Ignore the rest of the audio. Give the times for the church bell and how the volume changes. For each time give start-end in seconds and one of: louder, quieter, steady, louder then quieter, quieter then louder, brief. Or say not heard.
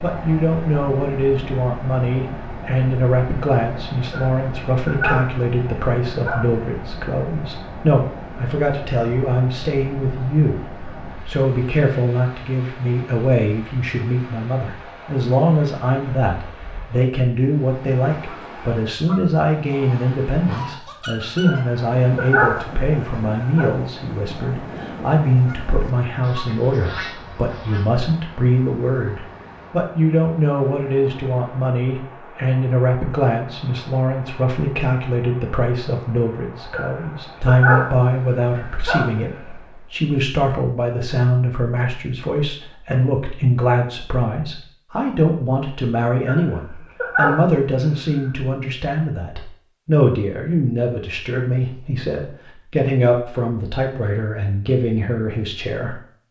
not heard.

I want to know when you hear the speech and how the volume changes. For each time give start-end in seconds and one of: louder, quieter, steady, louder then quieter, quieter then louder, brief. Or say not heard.
0.0-56.2 steady.